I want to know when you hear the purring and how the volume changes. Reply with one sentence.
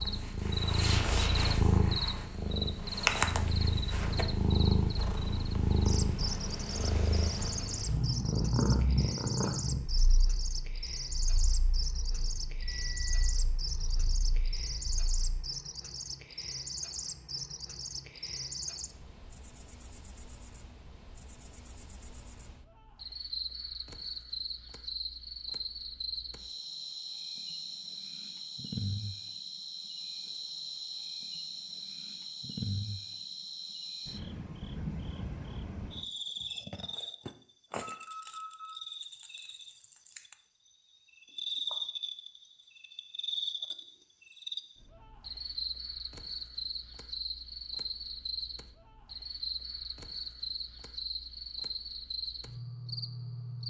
The purring can be heard from 0.0 to 15.3 s, getting quieter.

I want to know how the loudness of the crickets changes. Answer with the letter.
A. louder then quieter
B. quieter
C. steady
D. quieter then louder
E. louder
C.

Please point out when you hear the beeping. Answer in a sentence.
You can hear the beeping from 12.6 to 13.2 s and from 37.9 to 38.8 s.